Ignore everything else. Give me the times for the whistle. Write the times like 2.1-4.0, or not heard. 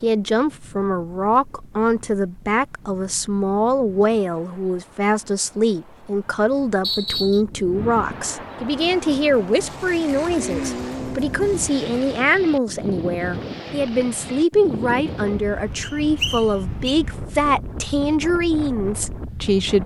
6.8-7.4, 15.8-16.9.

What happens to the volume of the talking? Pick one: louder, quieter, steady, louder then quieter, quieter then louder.
steady.